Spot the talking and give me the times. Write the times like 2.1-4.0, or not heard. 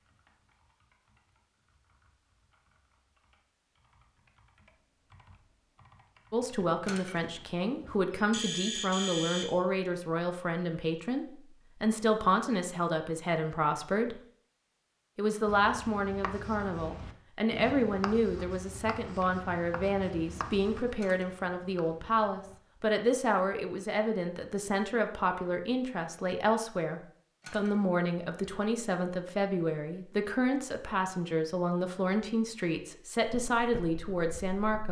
6.3-14.2, 15.2-34.8.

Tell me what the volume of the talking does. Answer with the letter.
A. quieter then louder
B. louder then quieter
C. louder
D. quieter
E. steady
E.